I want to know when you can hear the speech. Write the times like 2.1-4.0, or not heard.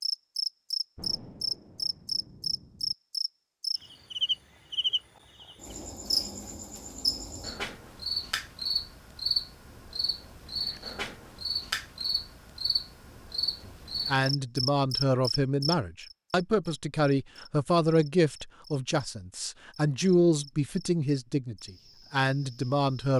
13.7-23.1.